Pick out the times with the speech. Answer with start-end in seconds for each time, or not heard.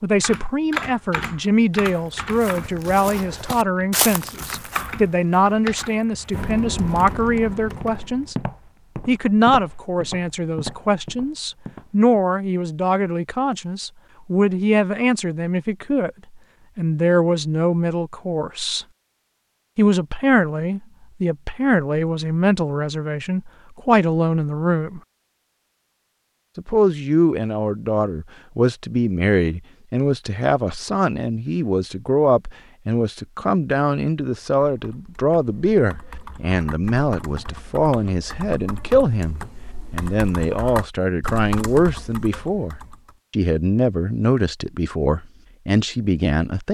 0.0-8.3, 9.1-16.1, 16.8-18.9, 19.8-25.0, 26.6-46.6.